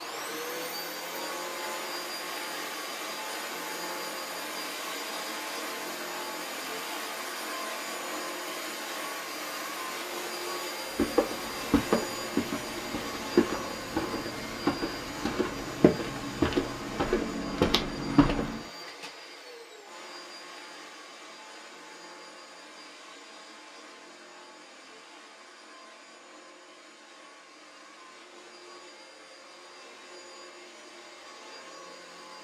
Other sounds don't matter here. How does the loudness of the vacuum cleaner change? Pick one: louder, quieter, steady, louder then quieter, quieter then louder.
quieter.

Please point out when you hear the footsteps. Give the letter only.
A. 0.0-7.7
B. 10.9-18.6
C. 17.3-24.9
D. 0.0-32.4
B.